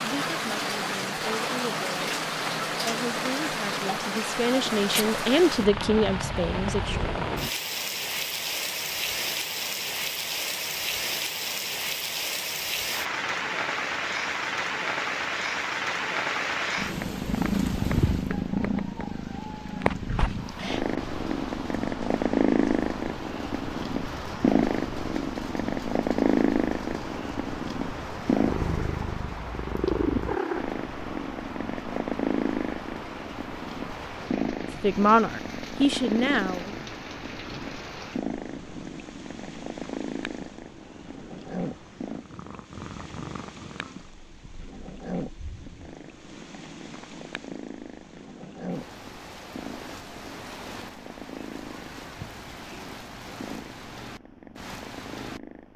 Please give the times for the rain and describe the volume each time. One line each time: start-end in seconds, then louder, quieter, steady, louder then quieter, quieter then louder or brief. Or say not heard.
0.0-55.7 quieter.